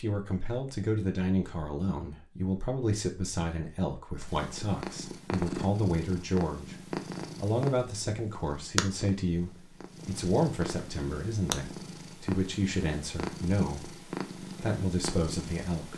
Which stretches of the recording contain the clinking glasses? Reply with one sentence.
You can't hear the clinking glasses here.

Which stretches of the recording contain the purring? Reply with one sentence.
You can hear the purring from 4.2 to 15.9 s.